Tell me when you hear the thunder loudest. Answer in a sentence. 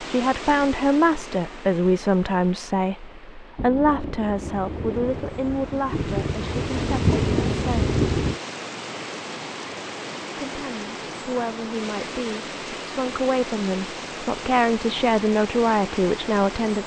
The volume of the thunder peaks at 7 seconds.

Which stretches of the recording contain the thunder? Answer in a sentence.
The thunder can be heard from 3.5 to 8.4 s.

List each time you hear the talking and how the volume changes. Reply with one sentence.
You can hear the talking from 0.0 to 8.0 s, getting quieter; and from 10.4 to 16.8 s, getting louder.